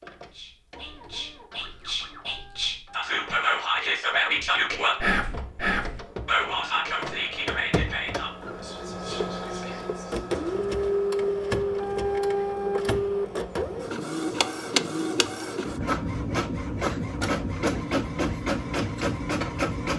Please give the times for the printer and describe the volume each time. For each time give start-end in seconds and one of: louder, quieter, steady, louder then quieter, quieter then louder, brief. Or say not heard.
0.0-19.9 louder.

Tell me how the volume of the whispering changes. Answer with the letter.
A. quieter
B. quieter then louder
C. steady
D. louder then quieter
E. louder
D.